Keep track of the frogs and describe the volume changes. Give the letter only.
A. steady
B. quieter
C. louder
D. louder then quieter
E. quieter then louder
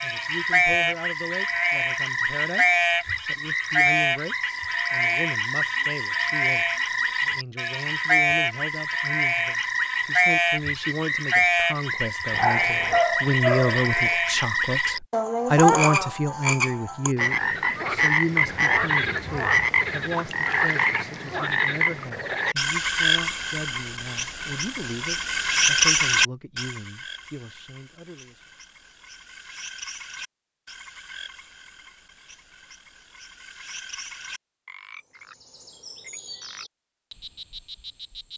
B.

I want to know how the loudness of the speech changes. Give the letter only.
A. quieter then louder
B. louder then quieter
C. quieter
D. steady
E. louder
B.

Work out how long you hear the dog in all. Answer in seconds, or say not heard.
2 s.